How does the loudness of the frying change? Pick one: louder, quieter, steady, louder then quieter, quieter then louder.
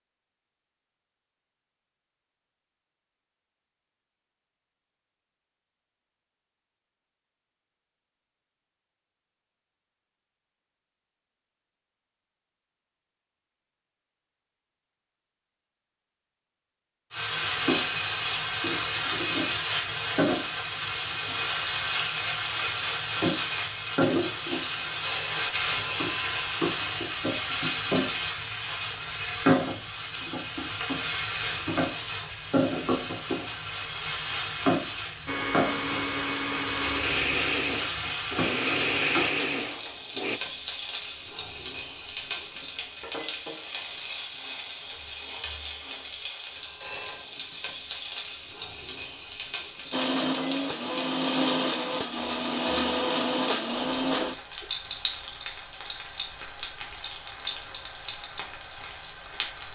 quieter.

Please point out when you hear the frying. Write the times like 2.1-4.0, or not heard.
17.1-59.6.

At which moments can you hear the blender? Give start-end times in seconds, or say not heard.
35.2-40.4, 49.9-54.6.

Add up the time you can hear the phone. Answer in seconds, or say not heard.
2 s.